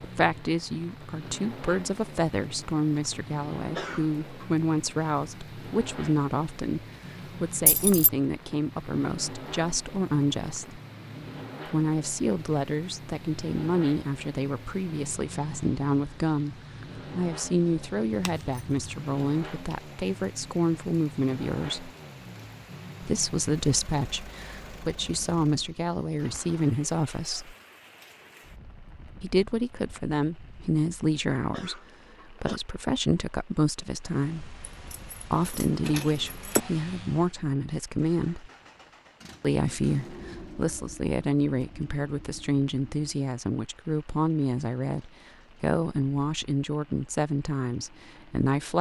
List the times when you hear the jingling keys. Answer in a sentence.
You can hear the jingling keys from 7.7 to 8.1 s, from 18.1 to 18.8 s and from 34.6 to 36.6 s.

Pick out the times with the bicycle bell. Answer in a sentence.
The bicycle bell can't be heard in this clip.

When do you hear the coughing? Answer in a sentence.
You can hear the coughing from 3.8 to 4.5 s and from 31.5 to 32.6 s.